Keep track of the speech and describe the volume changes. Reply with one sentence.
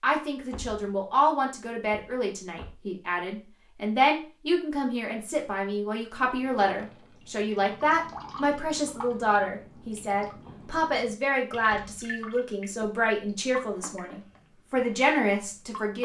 The volume of the speech stays about the same.